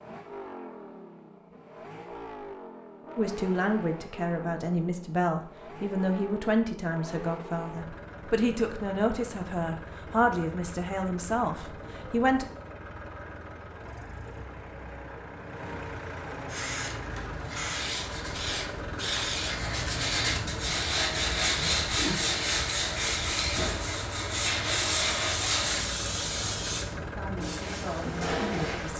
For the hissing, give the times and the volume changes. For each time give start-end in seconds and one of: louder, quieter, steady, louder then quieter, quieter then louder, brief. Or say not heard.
16.4-28.9 steady.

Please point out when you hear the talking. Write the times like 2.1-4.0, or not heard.
3.1-12.4, 26.9-28.9.